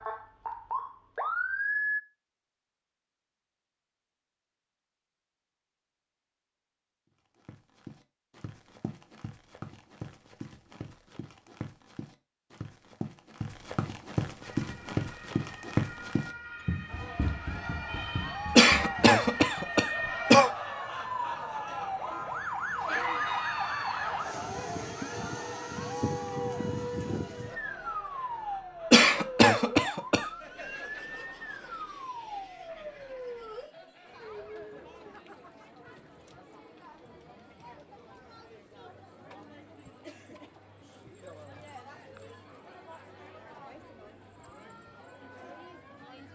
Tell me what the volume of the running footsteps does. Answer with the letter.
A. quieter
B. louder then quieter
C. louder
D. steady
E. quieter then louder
B.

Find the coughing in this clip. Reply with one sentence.
You can hear the coughing from 18.6 to 20.5 s and from 28.9 to 30.2 s.